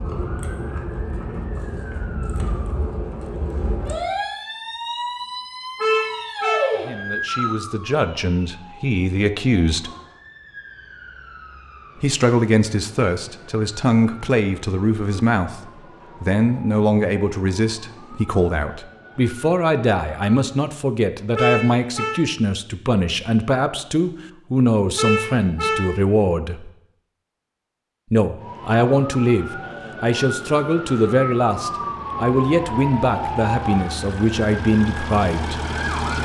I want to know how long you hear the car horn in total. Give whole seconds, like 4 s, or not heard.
3 s.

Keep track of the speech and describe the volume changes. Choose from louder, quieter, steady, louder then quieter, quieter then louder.
steady.